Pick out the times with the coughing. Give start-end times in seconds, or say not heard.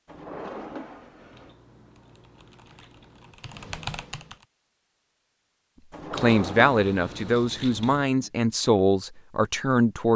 not heard.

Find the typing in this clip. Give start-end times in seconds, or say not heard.
1.9-4.5.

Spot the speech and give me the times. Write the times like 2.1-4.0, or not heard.
6.1-10.1.